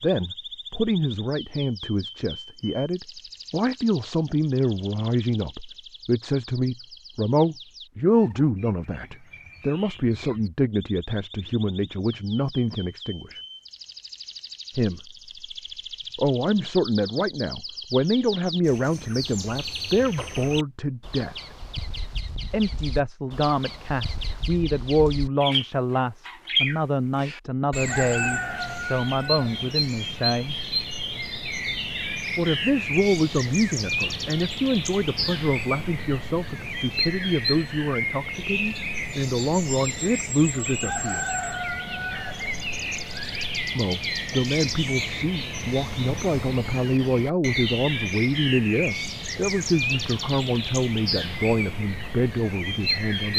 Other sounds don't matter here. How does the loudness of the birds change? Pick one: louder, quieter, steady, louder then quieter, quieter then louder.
louder.